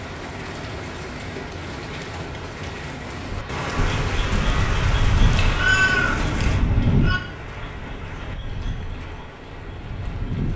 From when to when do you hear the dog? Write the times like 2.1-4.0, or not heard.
not heard.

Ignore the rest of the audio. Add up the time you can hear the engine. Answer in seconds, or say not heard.
4 s.